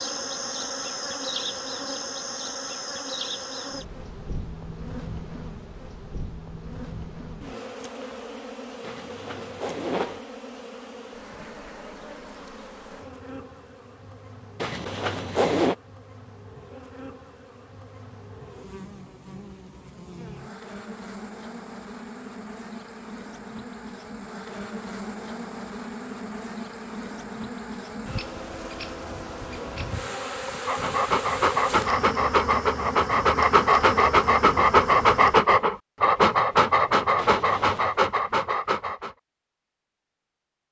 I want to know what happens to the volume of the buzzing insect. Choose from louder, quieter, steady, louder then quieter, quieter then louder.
quieter then louder.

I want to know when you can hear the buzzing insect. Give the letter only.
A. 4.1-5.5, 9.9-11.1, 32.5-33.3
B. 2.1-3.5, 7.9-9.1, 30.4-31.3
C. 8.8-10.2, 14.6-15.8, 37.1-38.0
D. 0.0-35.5
D.